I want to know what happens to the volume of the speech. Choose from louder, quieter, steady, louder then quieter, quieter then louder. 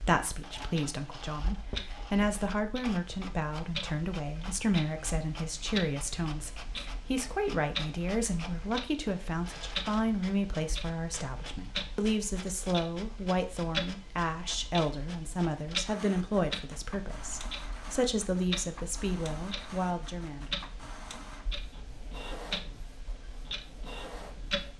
steady.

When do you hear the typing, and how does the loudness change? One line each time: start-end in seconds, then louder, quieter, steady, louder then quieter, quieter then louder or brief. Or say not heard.
not heard.